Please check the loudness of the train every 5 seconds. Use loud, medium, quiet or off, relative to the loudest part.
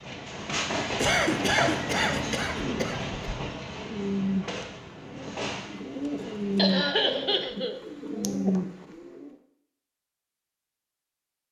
loud, medium, off.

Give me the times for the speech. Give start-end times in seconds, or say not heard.
not heard.